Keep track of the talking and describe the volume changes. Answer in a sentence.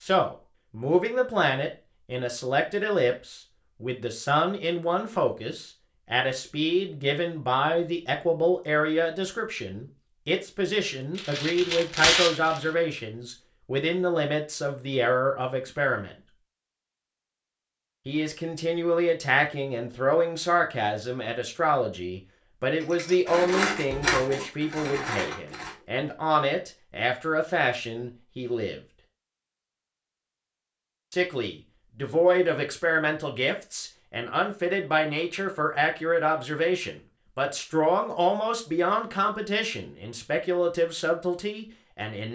The volume of the talking stays about the same.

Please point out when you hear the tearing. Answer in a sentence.
You can hear the tearing from 11.2 to 12.7 s.